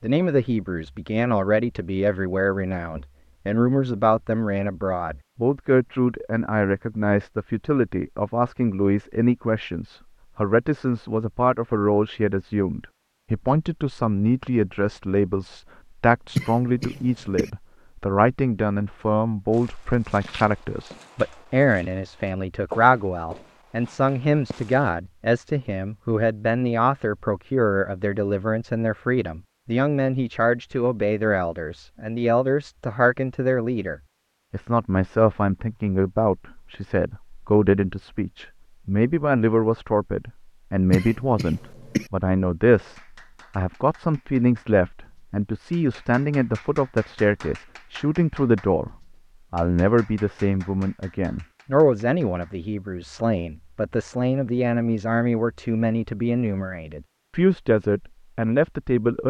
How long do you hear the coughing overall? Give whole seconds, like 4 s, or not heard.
2 s.